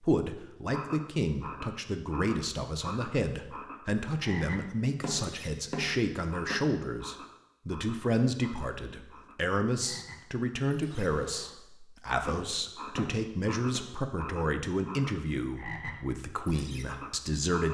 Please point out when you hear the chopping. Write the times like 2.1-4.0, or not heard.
4.8-6.7, 12.2-13.8.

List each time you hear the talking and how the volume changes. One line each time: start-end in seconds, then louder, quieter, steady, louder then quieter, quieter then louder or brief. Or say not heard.
0.0-17.6 steady.